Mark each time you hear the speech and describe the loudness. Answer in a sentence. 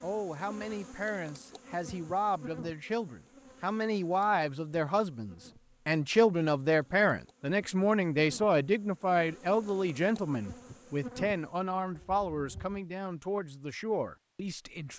You can hear the speech from 0.0 to 14.9 s, getting louder then quieter.